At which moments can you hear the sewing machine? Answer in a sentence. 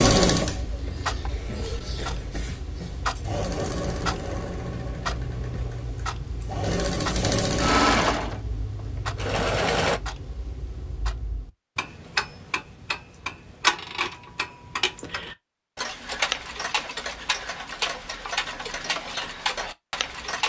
You can hear the sewing machine from 0.0 to 10.0 s.